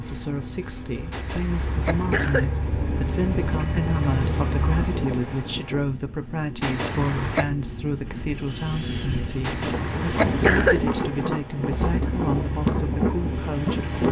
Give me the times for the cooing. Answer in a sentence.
The cooing can't be heard in this clip.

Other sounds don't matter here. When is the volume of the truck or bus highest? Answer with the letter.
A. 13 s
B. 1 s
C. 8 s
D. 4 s
D.